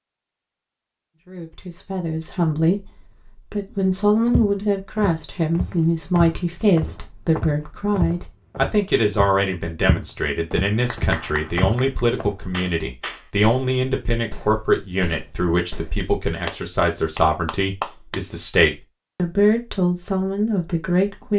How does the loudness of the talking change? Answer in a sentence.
The volume of the talking stays about the same.